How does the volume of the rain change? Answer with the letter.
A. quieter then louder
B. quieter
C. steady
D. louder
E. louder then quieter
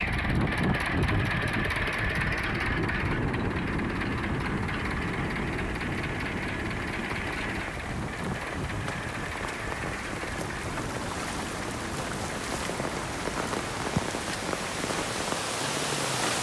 D.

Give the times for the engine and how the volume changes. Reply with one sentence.
You can hear the engine from 0.0 to 16.3 s, getting quieter.